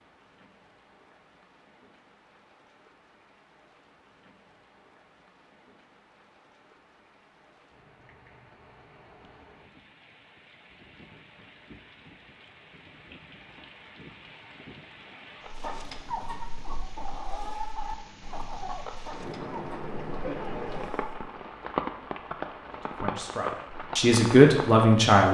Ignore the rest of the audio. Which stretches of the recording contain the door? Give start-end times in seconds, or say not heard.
not heard.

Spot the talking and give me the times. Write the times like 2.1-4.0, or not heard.
22.8-25.2.